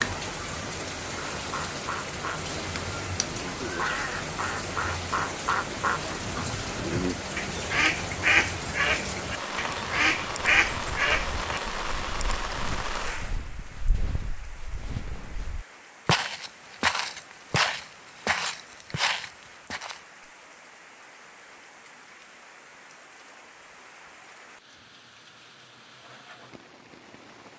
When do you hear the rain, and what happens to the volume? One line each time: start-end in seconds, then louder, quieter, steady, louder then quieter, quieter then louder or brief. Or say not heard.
0.0-27.5 quieter.